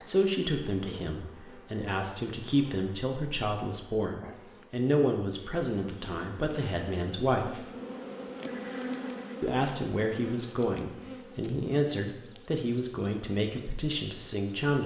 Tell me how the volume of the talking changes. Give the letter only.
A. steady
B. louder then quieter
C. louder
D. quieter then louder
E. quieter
A.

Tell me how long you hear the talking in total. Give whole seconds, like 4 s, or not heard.
13 s.